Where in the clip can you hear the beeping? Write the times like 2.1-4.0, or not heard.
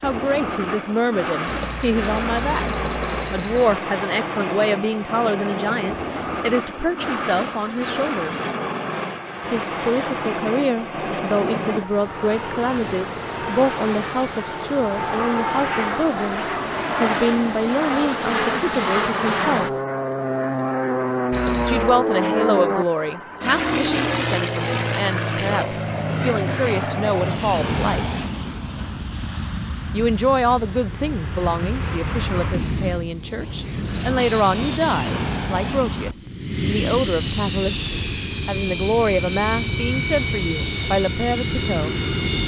1.4-3.8, 21.3-22.0.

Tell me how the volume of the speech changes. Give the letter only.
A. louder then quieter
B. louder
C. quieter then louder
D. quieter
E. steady
E.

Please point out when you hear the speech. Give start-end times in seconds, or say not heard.
0.0-8.4, 9.5-19.7, 21.6-28.1, 29.9-42.0.